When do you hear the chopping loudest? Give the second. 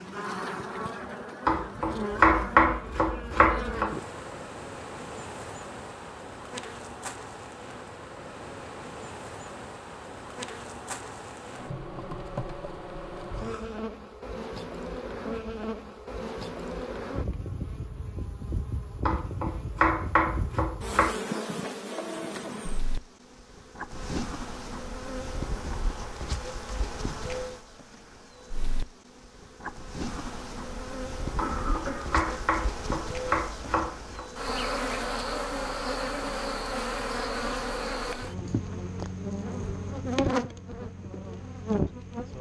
2 s.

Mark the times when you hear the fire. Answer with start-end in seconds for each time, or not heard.
not heard.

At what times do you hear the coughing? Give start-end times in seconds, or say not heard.
13.3-13.8, 31.4-32.5.